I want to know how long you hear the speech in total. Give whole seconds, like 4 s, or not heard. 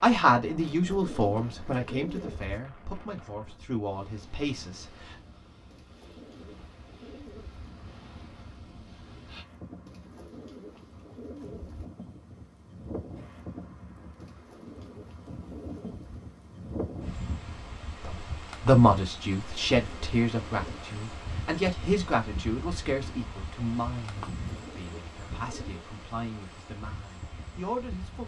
15 s.